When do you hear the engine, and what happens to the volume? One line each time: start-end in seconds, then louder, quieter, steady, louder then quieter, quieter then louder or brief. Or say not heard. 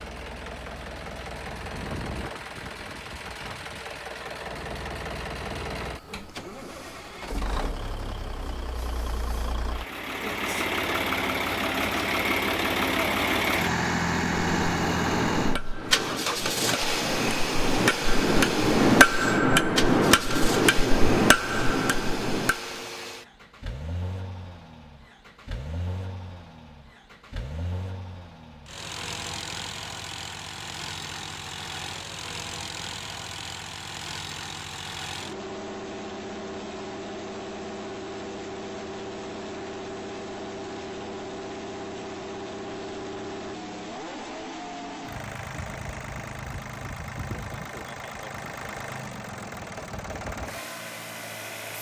0.0-51.7 louder then quieter.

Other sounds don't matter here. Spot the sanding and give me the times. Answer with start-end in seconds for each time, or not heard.
not heard.